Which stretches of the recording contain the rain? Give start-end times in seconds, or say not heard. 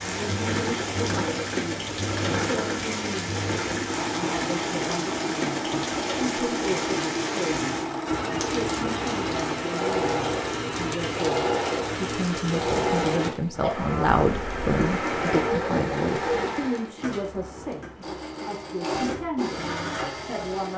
0.0-16.9.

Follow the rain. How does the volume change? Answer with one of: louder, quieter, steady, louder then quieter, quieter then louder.
steady.